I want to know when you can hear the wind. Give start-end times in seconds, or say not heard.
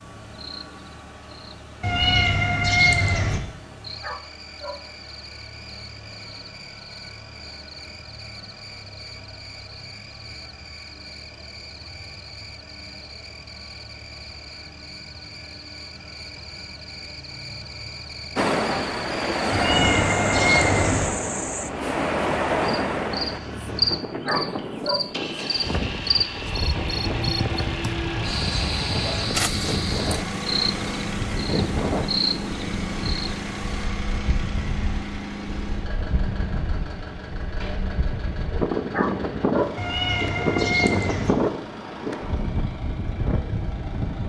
18.4-44.2.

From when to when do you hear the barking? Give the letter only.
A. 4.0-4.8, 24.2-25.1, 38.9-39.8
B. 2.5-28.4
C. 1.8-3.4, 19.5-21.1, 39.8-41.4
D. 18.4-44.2
A.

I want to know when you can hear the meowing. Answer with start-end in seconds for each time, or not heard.
1.8-3.4, 19.5-21.1, 39.8-41.4.